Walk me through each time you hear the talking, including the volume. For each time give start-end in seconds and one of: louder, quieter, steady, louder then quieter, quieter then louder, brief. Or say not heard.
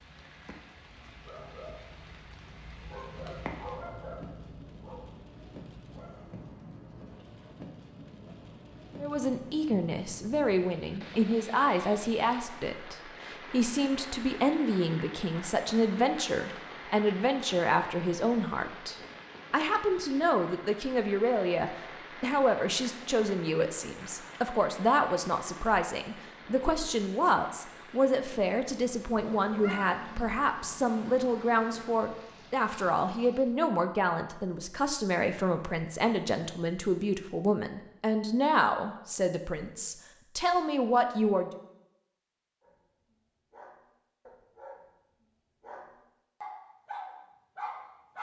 9.0-41.5 steady.